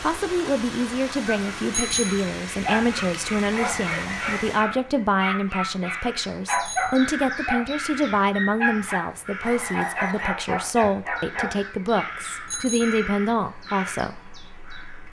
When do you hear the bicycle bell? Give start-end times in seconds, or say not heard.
1.7-2.3, 6.5-7.0, 12.4-13.1.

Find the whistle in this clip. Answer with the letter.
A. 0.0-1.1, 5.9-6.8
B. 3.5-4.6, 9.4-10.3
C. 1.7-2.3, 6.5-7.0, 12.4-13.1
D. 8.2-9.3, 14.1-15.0
B.